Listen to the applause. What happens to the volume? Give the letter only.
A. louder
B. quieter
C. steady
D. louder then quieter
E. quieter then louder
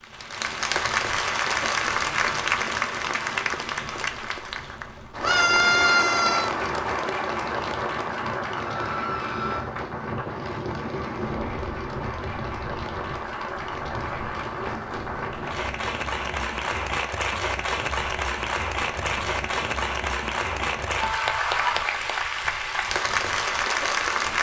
E.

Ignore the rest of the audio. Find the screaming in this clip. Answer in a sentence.
The screaming can be heard from 5.2 to 6.5 s, from 8.6 to 9.7 s and from 21.0 to 21.9 s.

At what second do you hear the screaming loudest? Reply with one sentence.
The loudest moment of the screaming is at 6 seconds.